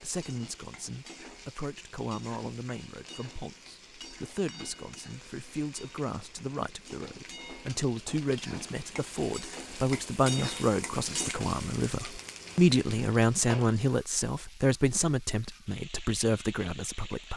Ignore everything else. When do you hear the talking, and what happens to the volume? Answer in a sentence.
You can hear the talking from 0.0 to 17.3 s, getting louder.